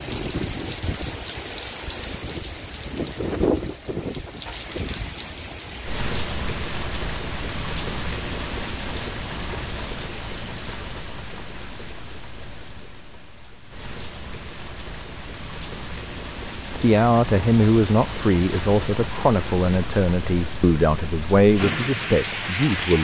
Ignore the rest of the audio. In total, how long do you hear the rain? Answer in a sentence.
The rain can be heard for 23 seconds in total.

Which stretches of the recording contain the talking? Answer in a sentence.
You can hear the talking from 16.8 to 22.9 s.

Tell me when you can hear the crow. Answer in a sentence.
You can't hear the crow here.